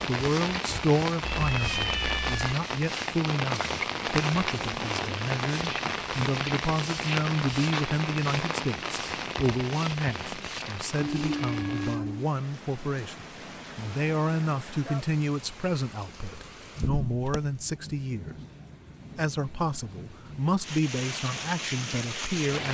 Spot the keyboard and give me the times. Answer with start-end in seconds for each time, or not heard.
not heard.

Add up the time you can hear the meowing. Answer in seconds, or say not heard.
3 s.